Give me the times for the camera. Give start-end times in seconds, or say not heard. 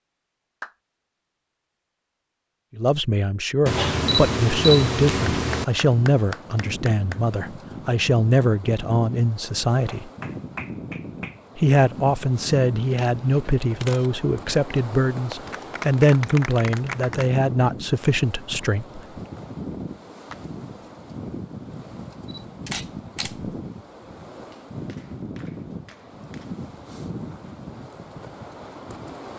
3.6-5.7, 12.9-14.8, 22.3-23.4.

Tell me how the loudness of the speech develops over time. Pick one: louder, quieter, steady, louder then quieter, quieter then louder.
steady.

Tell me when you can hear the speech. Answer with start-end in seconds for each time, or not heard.
2.8-10.1, 11.6-19.0.